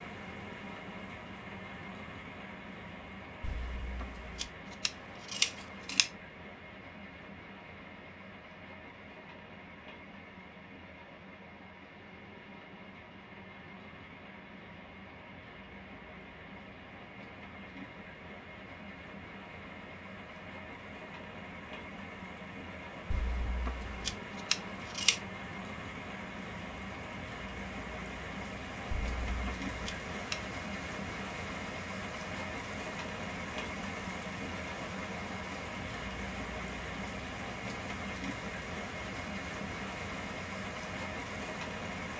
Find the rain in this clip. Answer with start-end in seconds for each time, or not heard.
0.0-42.1.